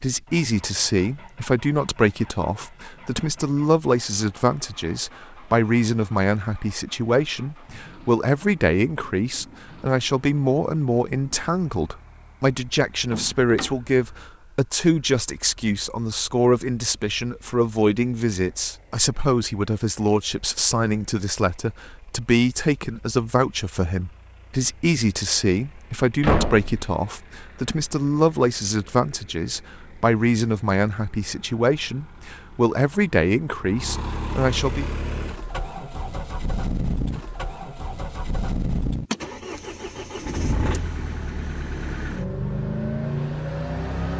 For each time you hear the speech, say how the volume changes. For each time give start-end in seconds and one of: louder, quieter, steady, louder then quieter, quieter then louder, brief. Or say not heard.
0.0-34.9 steady.